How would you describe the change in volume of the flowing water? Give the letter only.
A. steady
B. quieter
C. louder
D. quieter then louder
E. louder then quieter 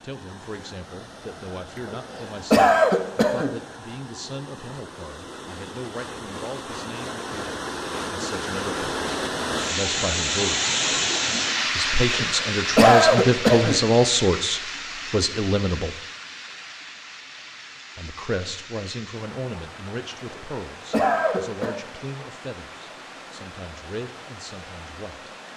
E.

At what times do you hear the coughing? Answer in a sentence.
The coughing can be heard from 1.8 to 3.5 s, from 12.2 to 13.8 s and from 20.1 to 21.8 s.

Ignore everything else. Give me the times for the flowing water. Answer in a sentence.
You can hear the flowing water from 0.0 to 25.5 s.